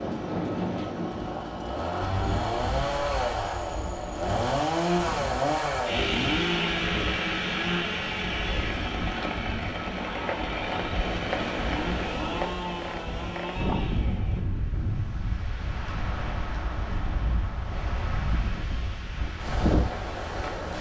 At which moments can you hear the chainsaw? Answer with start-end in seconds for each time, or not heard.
0.0-14.4.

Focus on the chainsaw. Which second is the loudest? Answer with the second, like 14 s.
5 s.